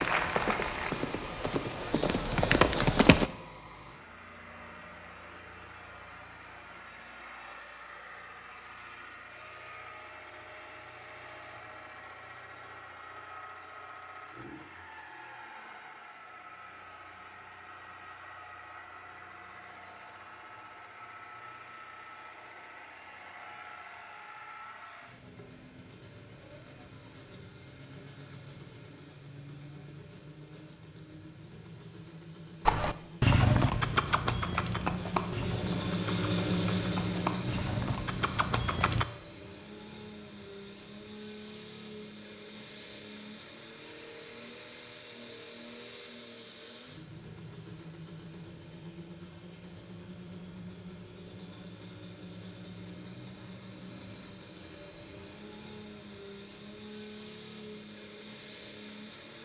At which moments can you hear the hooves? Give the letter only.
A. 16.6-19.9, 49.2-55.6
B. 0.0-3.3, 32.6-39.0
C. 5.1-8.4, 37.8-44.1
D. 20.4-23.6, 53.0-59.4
B.